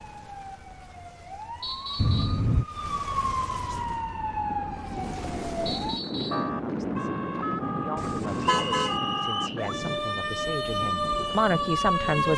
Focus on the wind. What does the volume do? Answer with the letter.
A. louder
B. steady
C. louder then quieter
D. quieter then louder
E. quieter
C.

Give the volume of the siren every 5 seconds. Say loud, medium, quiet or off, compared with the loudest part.
medium, medium, loud.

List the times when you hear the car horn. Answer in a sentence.
You can hear the car horn from 1.9 to 2.6 s and from 8.0 to 9.0 s.